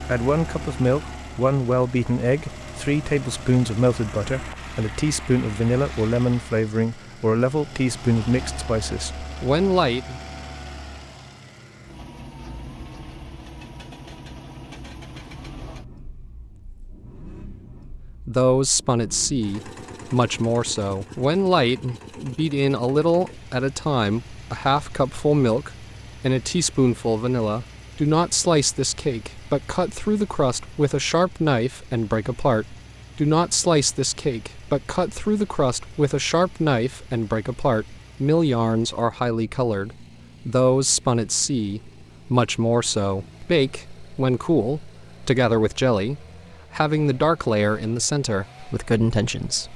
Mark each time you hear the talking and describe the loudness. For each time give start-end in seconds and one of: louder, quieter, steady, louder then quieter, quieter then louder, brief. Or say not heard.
0.0-10.2 steady
18.2-49.7 steady.